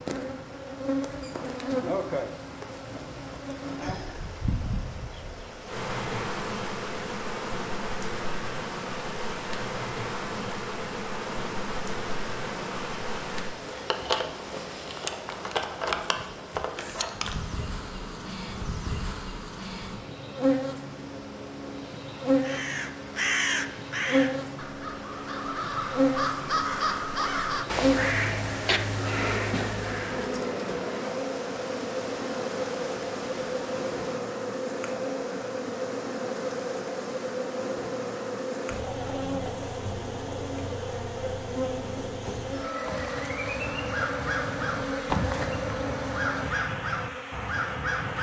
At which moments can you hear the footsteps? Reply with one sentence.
The footsteps can't be heard in this clip.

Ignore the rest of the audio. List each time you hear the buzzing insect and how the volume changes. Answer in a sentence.
The buzzing insect can be heard from 0.0 to 48.1 s, at a steady volume.